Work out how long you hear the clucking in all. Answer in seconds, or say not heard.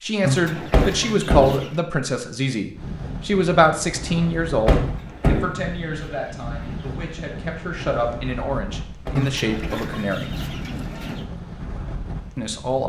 6 s.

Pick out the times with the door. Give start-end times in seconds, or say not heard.
0.7-1.6, 4.7-5.5, 9.1-9.9.